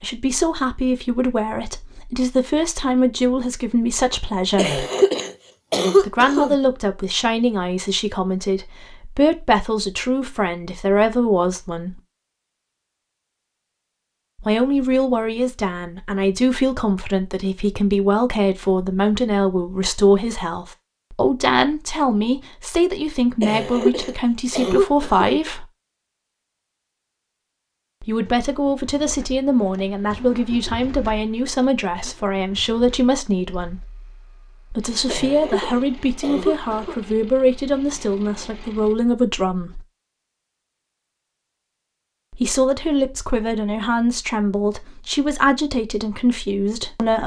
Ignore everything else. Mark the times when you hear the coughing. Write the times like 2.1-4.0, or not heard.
4.5-6.5, 23.4-25.4, 35.0-37.0.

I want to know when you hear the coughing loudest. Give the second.
6 s.